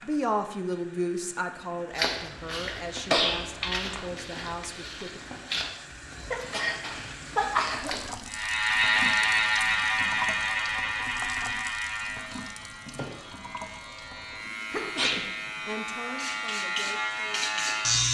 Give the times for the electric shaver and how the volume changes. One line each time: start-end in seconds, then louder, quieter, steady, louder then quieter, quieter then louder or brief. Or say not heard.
8.2-18.0 quieter then louder.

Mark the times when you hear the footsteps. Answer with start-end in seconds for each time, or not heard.
1.9-8.3.